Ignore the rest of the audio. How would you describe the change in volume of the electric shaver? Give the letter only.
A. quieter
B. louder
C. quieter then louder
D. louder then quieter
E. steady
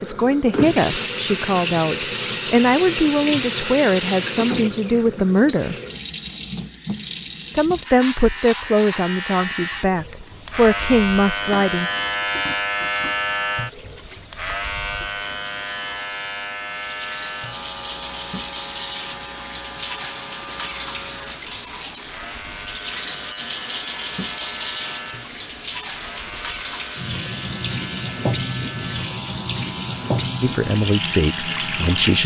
A.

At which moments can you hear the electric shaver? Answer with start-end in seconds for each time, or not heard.
7.8-32.2.